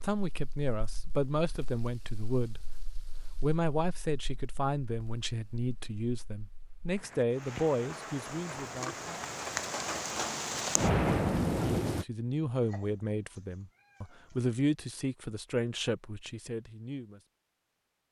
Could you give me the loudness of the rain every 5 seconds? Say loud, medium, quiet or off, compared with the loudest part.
quiet, medium, loud, off.